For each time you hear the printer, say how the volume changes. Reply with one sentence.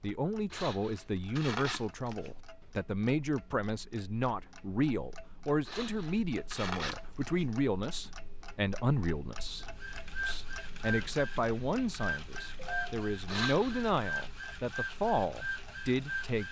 The printer can be heard from 9.6 to 16.4 s, at a steady volume.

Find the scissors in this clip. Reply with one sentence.
The scissors can be heard from 0.5 to 2.4 s, from 5.7 to 7.5 s and from 13.2 to 14.0 s.